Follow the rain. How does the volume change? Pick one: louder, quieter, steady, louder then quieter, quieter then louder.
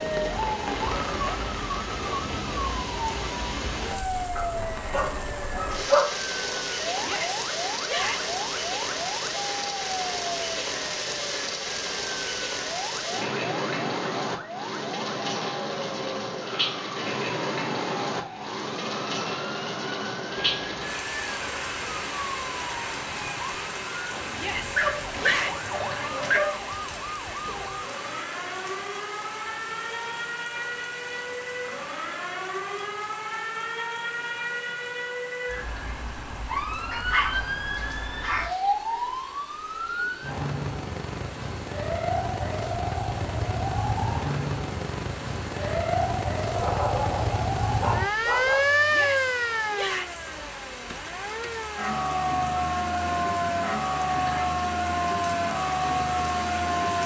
quieter then louder.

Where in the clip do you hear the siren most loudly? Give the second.
49 s.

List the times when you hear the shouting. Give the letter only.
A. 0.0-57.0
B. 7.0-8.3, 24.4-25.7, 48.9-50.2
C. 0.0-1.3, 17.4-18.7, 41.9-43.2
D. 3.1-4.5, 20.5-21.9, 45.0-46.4
B.